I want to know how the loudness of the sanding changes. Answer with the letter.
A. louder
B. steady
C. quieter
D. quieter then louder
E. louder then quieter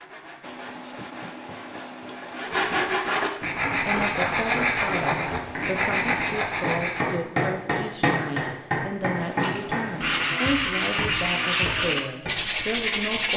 A.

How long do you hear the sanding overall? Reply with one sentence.
The sanding can be heard for 11 seconds in total.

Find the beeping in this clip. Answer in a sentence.
You can hear the beeping from 0.4 to 2.5 s, from 5.2 to 6.5 s and from 9.2 to 10.3 s.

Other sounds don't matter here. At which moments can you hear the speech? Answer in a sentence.
You can hear the speech from 3.8 to 13.3 s.